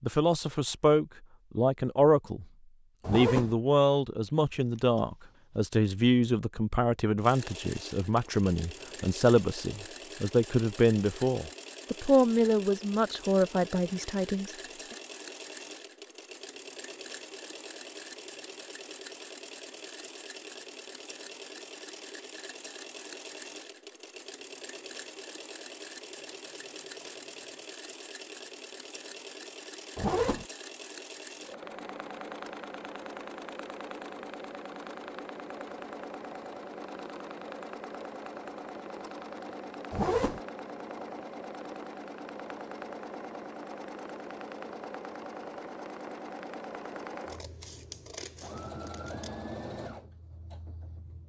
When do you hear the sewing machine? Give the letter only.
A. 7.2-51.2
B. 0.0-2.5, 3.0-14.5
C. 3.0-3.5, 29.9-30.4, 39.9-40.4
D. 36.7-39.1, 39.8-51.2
A.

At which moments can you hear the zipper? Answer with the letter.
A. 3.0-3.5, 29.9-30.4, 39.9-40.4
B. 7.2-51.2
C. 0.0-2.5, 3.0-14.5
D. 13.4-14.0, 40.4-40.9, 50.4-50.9
A.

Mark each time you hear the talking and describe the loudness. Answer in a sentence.
You can hear the talking briefly from 0.0 to 2.5 s; and from 3.0 to 14.5 s, at a steady volume.